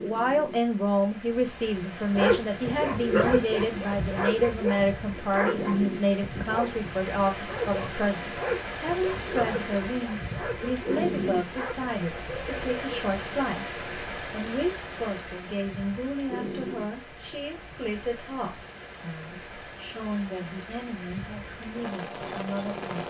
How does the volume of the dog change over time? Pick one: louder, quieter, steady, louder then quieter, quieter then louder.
quieter.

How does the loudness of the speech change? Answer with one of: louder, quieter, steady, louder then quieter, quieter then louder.
quieter.